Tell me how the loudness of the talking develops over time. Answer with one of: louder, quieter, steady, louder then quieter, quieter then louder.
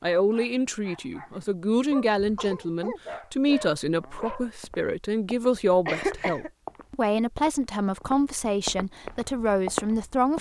steady.